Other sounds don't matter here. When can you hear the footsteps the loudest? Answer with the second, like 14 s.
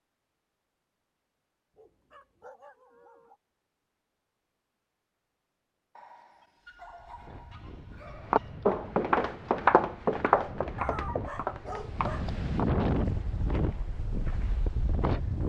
10 s.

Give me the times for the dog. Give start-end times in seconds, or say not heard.
1.8-3.4, 6.0-8.7, 10.8-12.2.